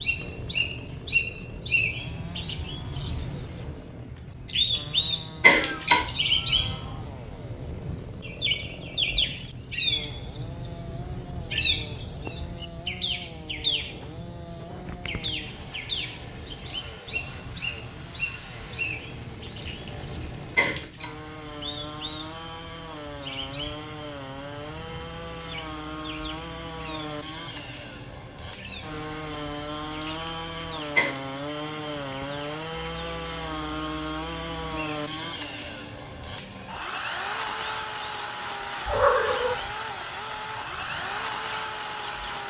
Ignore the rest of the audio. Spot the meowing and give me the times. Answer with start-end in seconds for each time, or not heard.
5.5-7.1, 38.9-39.6.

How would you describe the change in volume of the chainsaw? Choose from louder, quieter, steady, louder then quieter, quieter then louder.
louder.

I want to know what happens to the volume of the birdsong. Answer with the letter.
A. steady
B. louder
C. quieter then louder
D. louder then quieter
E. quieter
E.